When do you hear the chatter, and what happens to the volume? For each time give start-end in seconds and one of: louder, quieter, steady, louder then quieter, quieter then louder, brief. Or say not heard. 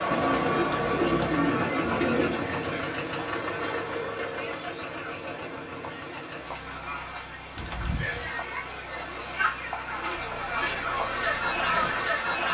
0.0-12.5 quieter then louder.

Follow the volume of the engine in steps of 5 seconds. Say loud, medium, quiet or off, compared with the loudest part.
loud, medium, quiet.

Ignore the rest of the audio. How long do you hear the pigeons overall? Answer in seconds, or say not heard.
3 s.